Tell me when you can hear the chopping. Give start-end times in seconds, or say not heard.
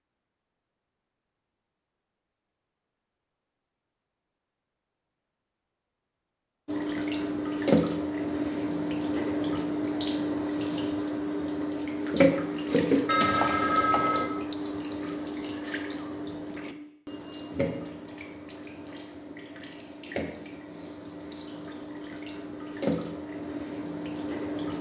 not heard.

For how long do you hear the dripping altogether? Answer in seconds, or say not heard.
18 s.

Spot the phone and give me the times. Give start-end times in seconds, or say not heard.
13.1-14.3.